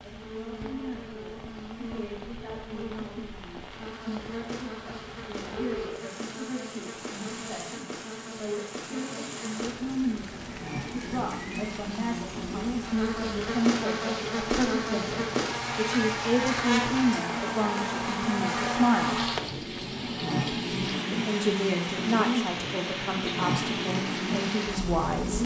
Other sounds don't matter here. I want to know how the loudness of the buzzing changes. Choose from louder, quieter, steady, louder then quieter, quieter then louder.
louder.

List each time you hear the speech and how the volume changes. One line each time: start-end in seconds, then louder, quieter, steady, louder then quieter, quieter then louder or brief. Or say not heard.
0.0-19.2 louder
21.1-25.4 quieter then louder.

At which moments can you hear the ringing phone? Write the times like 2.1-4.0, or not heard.
5.5-6.2.